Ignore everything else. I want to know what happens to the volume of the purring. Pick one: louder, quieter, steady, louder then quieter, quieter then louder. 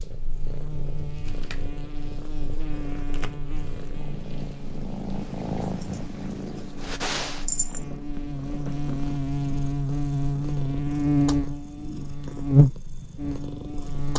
louder then quieter.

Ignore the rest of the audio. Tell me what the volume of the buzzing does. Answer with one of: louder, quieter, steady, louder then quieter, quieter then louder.
louder.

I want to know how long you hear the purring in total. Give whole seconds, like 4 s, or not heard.
14 s.